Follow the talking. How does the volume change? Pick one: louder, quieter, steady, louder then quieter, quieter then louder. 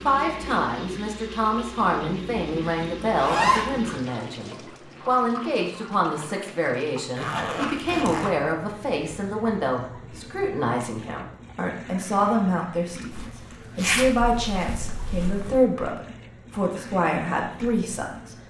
steady.